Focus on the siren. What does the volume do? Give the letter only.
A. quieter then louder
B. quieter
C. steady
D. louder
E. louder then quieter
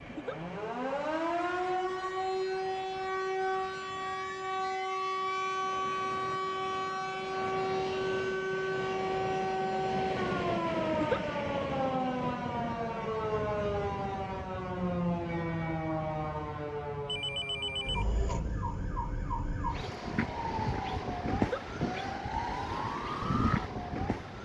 C.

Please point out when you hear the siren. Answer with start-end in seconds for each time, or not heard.
0.0-24.4.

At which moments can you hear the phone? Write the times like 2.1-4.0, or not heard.
17.1-18.1.